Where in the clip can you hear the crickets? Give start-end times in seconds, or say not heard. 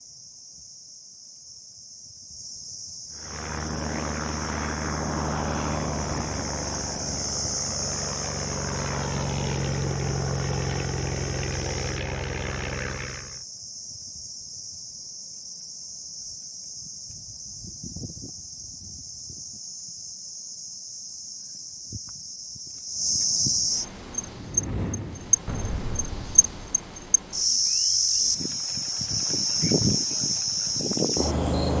0.0-31.7.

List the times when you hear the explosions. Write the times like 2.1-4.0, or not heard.
25.4-26.8.